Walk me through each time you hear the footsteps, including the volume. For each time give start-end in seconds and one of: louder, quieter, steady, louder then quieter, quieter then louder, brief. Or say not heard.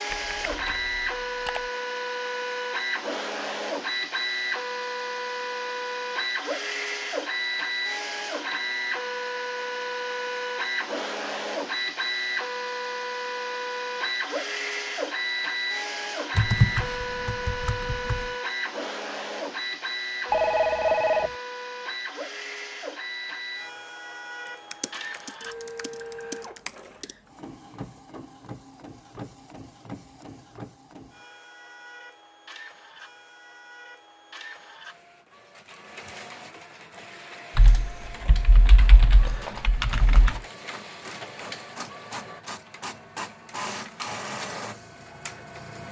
not heard.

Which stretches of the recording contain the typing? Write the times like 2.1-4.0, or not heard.
0.1-1.6, 16.4-18.3, 24.7-27.1, 37.5-40.4.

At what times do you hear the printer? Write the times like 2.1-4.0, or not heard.
0.0-45.8.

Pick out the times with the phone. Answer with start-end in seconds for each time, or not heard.
20.3-21.4.